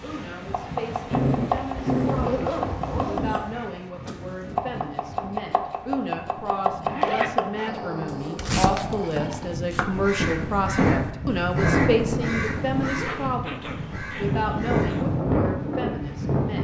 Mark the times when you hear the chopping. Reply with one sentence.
The chopping can be heard from 0.5 to 9.9 s.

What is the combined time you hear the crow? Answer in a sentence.
The crow can be heard for 5 seconds in total.